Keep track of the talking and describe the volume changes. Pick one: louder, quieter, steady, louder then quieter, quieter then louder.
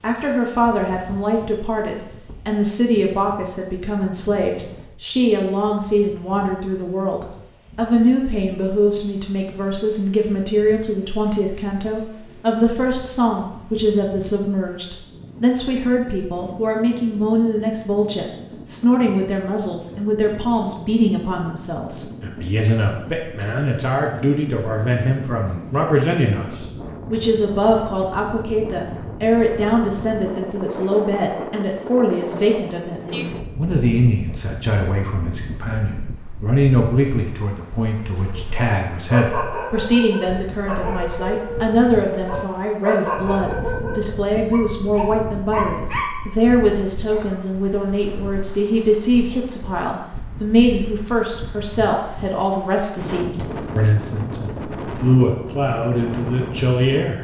steady.